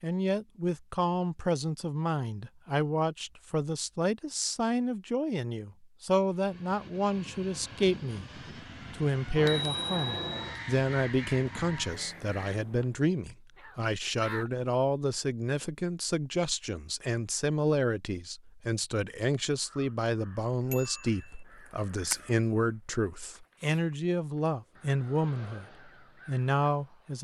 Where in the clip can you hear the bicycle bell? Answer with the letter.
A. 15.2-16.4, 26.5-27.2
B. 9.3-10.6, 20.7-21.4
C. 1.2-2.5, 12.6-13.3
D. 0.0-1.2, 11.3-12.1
B.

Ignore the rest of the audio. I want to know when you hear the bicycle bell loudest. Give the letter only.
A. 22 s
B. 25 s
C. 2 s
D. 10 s
D.